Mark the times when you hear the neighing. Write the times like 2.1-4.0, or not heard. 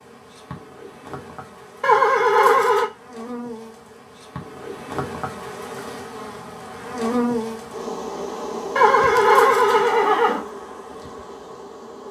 1.8-2.9, 8.8-10.4.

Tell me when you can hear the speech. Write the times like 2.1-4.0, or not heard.
not heard.